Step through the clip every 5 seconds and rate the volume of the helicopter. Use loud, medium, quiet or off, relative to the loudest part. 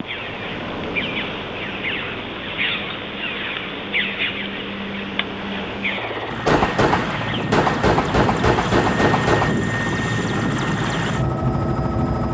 medium, loud, loud.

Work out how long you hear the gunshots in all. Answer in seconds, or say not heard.
3 s.